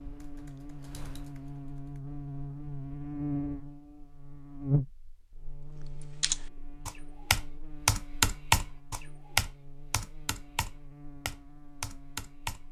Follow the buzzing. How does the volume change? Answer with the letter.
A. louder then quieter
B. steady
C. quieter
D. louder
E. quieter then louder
A.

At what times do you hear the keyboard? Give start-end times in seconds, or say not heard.
0.0-2.0, 6.2-12.6.